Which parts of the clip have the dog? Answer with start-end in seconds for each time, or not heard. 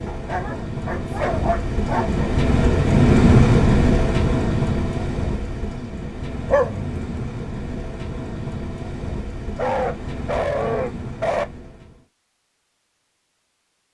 0.1-2.2, 6.5-6.9, 9.6-11.4.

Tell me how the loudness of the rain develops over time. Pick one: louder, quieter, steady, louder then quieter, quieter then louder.
louder then quieter.